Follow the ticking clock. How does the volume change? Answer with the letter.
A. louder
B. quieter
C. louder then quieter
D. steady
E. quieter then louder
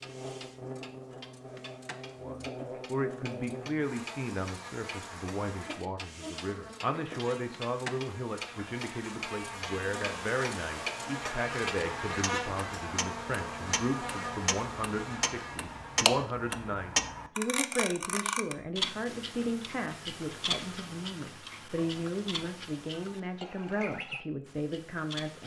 C.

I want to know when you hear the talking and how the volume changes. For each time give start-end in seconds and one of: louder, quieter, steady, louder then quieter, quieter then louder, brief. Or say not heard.
2.2-25.4 steady.